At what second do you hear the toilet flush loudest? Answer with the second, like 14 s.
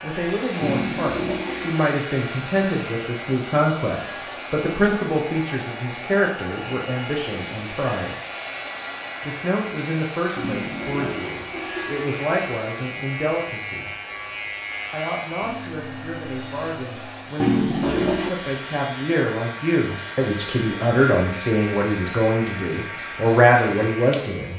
18 s.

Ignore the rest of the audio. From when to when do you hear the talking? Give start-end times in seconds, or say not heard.
0.0-8.2, 9.2-13.9, 14.9-24.5.